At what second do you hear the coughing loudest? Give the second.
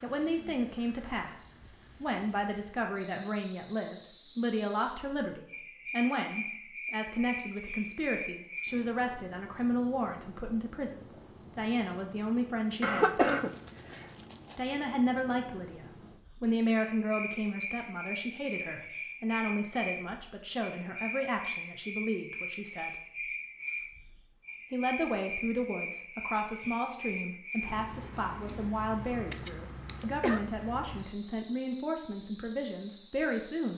13 s.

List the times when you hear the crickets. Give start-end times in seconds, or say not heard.
0.0-33.7.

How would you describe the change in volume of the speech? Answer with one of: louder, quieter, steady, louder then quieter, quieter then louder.
steady.